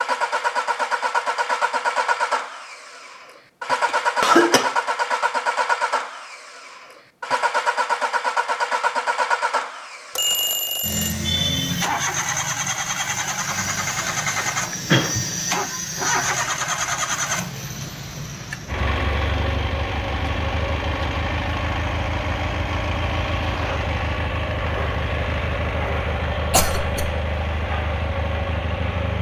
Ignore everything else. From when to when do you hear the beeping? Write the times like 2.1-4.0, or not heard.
10.2-11.2.